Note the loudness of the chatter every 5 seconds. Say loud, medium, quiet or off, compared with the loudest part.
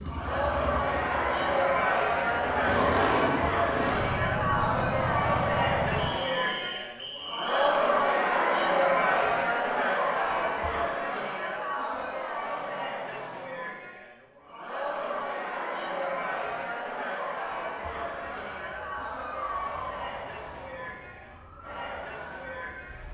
loud, loud, medium, medium, quiet.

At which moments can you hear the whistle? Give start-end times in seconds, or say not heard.
6.0-7.8.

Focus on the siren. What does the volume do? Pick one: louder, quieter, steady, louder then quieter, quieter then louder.
quieter then louder.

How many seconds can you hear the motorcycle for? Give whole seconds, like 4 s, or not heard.
6 s.